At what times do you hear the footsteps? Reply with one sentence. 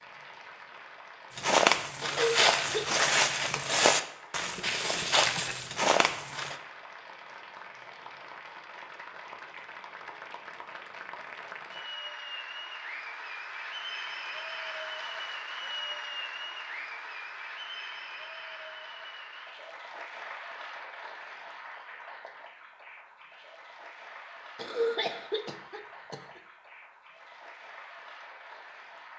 The footsteps can be heard from 1.4 to 6.6 s.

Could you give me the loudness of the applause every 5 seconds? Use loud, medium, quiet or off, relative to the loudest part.
medium, medium, loud, loud, medium, medium.